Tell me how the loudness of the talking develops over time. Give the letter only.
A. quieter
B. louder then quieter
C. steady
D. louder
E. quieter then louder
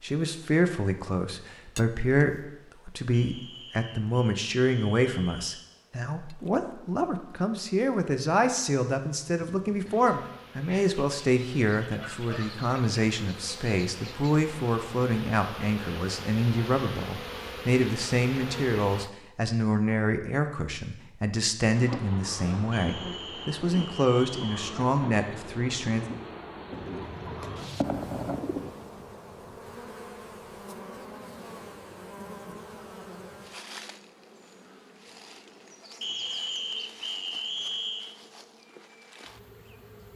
C.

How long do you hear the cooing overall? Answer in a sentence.
You can hear the cooing for 2 seconds altogether.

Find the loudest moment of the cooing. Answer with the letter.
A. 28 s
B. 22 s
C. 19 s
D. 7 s
A.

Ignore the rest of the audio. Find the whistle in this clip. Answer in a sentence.
You can hear the whistle from 3.1 to 5.7 s, from 22.7 to 24.6 s and from 36.0 to 38.1 s.